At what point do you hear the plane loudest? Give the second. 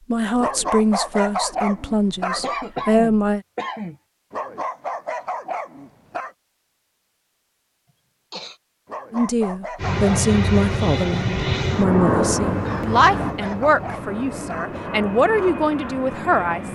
12 s.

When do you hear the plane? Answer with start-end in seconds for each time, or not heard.
9.8-16.7.